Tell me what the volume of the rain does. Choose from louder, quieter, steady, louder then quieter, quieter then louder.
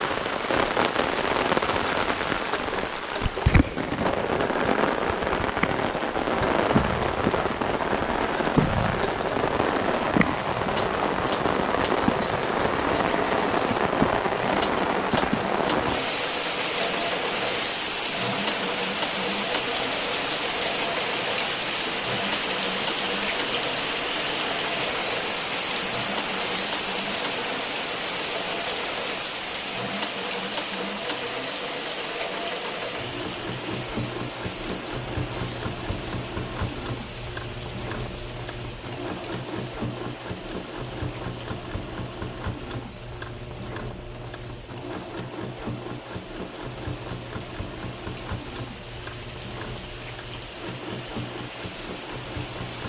quieter.